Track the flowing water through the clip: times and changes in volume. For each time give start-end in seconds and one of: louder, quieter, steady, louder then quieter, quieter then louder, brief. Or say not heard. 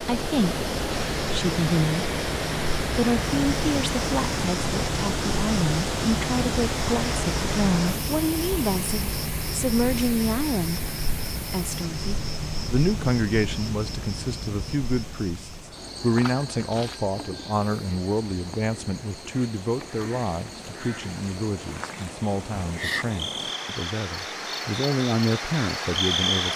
0.0-26.5 quieter then louder.